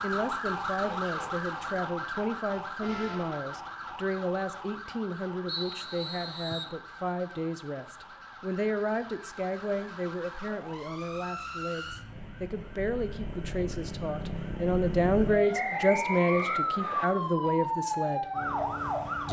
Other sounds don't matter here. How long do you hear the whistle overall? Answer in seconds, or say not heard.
3 s.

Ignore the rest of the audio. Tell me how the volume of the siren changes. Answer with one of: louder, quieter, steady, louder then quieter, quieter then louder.
quieter then louder.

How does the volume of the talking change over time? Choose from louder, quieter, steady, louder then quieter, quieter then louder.
louder.